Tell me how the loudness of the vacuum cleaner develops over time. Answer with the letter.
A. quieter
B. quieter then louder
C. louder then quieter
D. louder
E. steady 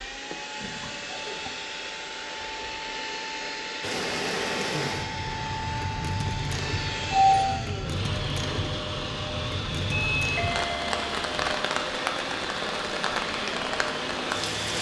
E.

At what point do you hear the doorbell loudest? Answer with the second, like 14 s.
7 s.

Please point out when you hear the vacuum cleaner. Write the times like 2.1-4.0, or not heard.
0.0-14.7.